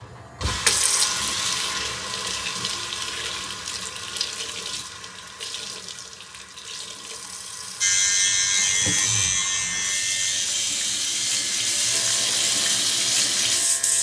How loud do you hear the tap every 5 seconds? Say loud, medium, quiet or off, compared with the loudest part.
loud, medium, loud.